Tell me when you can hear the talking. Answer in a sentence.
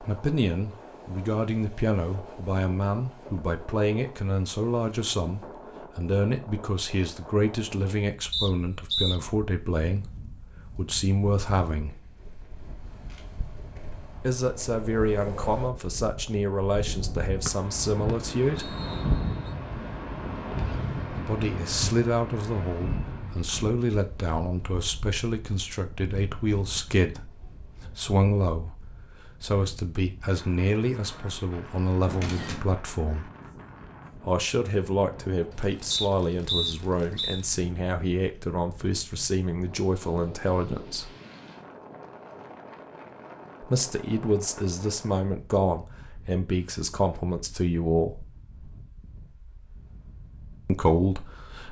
You can hear the talking from 0.0 to 12.0 s, from 14.2 to 18.8 s, from 21.1 to 33.3 s, from 34.1 to 41.1 s, from 43.6 to 48.2 s and from 50.6 to 51.6 s.